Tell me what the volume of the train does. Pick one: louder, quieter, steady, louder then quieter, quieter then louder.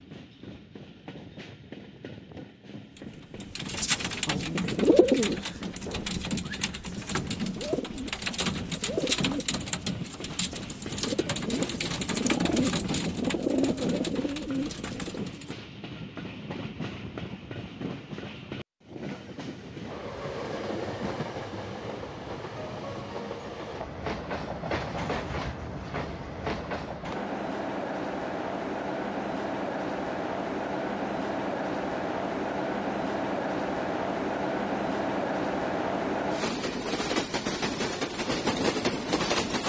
louder.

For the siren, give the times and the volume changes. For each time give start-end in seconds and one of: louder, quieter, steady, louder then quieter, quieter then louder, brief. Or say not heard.
not heard.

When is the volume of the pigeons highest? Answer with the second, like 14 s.
5 s.